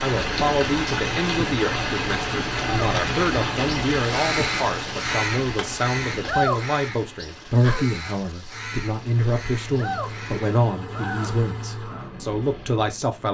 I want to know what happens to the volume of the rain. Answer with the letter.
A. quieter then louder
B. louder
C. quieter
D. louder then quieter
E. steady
C.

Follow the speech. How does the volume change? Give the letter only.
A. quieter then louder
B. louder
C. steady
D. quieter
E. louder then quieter
C.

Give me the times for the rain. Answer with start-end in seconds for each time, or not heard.
0.0-10.8.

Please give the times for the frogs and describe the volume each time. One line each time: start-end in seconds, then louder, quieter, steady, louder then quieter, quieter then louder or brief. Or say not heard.
not heard.